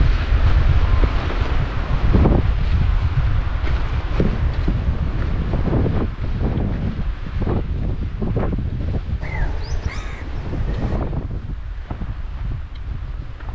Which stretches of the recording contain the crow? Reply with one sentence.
You can hear the crow from 9.2 to 11.0 s.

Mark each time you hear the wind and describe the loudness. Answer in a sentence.
You can hear the wind from 0.0 to 13.5 s, getting quieter.